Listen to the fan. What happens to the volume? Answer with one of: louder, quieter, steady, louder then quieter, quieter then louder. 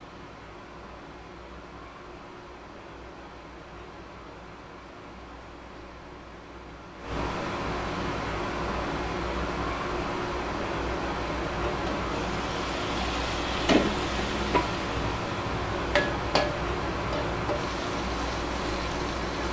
louder.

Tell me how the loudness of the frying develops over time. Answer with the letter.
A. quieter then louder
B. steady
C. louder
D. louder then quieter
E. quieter
D.